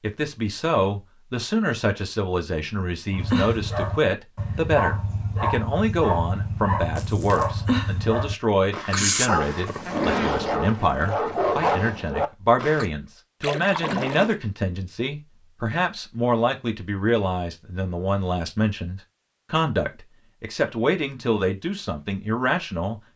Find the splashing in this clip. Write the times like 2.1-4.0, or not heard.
7.0-7.5, 13.4-14.4.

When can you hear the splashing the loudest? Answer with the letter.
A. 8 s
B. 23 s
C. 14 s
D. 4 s
C.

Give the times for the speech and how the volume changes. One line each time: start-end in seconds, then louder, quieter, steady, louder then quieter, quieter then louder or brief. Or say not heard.
0.0-23.0 steady.